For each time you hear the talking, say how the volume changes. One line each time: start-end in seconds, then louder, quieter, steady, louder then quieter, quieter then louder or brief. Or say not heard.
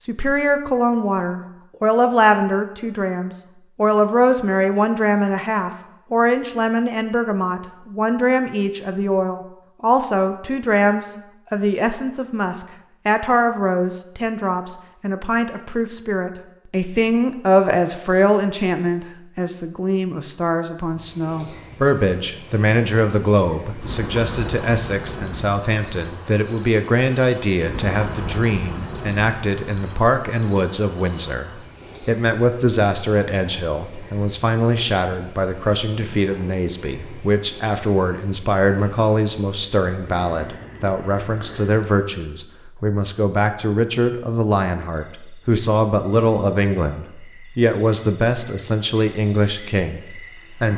0.0-50.7 steady.